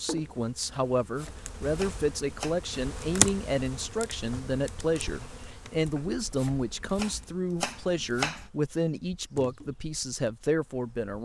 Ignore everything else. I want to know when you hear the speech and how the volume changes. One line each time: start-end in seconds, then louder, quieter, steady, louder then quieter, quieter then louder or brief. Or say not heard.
0.0-11.2 steady.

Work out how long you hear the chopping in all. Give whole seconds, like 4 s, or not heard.
4 s.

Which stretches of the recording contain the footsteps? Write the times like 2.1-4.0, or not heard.
not heard.